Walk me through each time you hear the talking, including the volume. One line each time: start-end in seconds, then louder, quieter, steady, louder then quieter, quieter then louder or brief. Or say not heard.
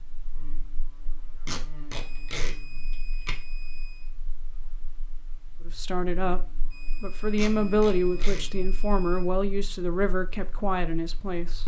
5.7-11.6 louder then quieter.